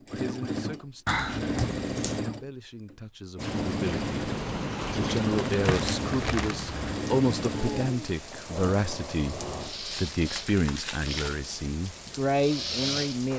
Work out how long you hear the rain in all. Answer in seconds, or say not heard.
10 s.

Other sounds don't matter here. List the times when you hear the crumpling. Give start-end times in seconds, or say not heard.
1.1-2.2, 5.5-6.8, 9.9-11.5.